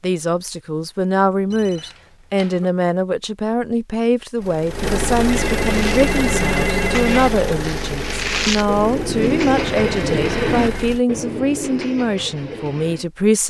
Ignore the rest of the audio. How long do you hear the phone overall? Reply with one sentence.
You can hear the phone for 5 seconds altogether.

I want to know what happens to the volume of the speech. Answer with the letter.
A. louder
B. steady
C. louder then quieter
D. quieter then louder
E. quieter
B.